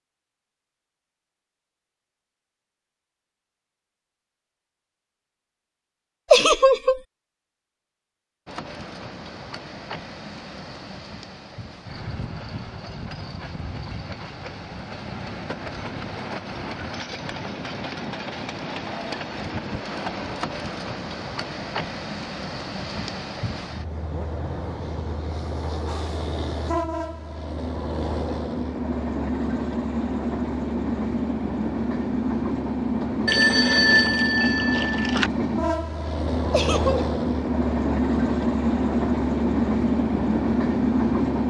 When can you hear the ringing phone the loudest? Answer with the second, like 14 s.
34 s.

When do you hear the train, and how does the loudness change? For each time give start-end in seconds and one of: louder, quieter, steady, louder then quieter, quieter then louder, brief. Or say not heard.
8.4-41.4 louder.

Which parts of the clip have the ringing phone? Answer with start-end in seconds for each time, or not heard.
33.2-35.3.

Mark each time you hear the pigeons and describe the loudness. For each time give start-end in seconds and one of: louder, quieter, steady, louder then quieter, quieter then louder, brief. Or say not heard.
not heard.